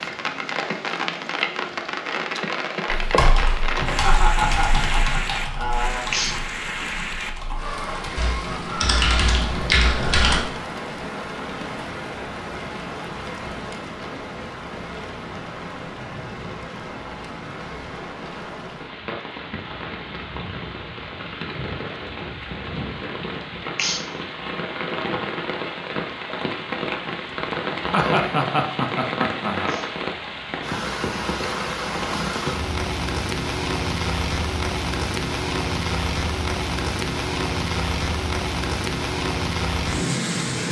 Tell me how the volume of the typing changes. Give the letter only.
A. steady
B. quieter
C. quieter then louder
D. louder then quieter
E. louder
C.